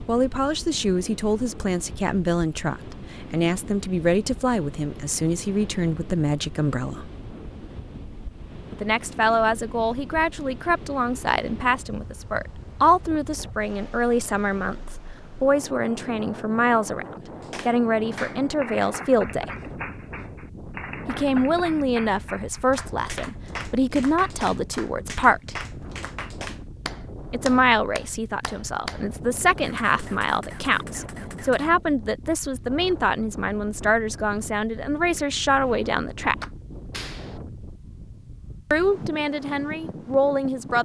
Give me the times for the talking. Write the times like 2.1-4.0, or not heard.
0.1-7.1, 8.7-17.1, 17.6-19.5, 21.1-25.6, 27.3-36.4, 38.7-40.8.